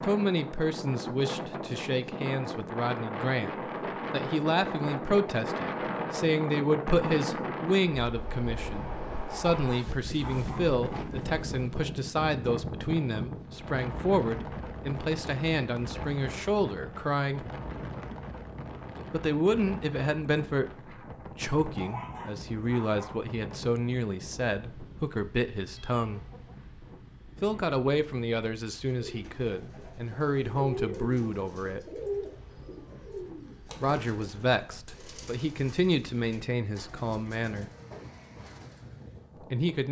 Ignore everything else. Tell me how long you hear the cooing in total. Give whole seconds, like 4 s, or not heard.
10 s.